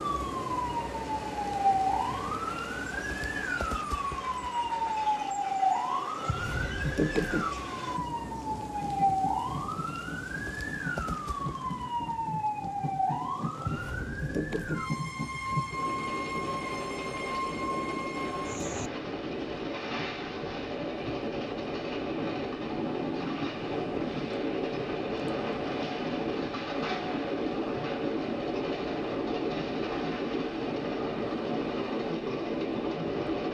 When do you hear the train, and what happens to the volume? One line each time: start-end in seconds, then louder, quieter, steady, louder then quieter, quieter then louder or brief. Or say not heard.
0.0-33.4 louder.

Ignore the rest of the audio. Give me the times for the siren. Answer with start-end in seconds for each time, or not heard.
0.0-18.9.